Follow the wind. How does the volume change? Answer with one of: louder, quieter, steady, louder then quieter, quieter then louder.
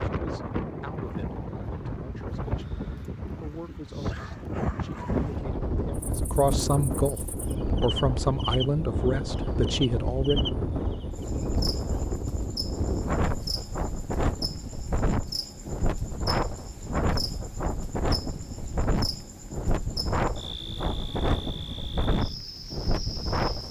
steady.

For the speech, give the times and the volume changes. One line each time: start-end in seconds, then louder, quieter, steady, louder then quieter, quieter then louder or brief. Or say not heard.
0.0-10.4 louder.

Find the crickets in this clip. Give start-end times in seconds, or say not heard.
6.0-23.6.